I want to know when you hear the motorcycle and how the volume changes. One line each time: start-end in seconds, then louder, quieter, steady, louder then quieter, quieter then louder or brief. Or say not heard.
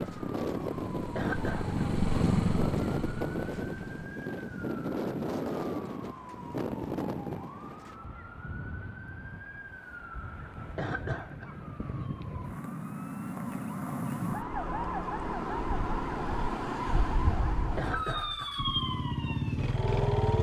0.0-4.1 louder then quieter
17.9-20.3 brief.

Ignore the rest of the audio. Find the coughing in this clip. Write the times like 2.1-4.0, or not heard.
1.1-1.8, 10.8-11.6, 17.8-18.6.